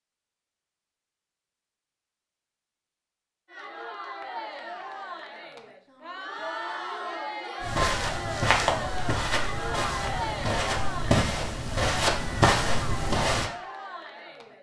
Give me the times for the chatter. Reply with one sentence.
You can hear the chatter from 3.5 to 14.5 s.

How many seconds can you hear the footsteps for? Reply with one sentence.
You can hear the footsteps for 6 seconds altogether.